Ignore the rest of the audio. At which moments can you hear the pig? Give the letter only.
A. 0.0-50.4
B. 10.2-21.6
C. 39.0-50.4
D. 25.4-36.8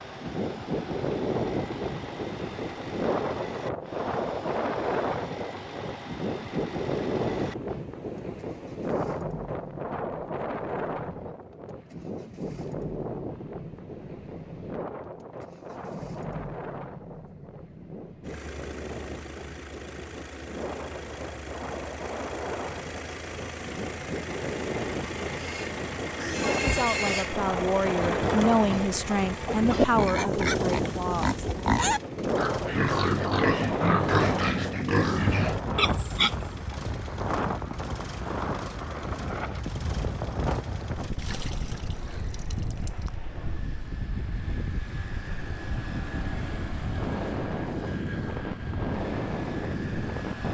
D.